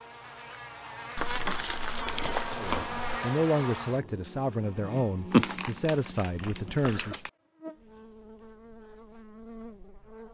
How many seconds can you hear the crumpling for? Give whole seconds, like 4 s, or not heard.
4 s.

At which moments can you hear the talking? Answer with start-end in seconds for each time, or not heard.
2.5-7.2.